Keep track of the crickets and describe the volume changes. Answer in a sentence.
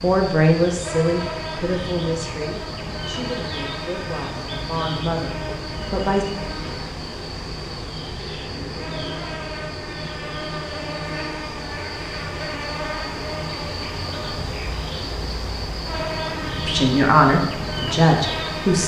The volume of the crickets stays about the same.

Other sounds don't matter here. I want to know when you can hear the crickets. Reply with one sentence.
The crickets can be heard from 0.0 to 18.8 s.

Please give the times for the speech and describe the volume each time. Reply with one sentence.
The speech can be heard from 0.0 to 6.2 s, getting quieter then louder; and briefly from 16.6 to 18.8 s.